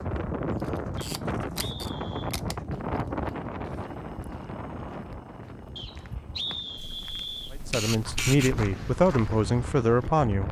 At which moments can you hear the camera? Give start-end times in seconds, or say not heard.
0.6-2.5, 6.8-8.6.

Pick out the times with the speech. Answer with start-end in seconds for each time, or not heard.
7.5-10.4.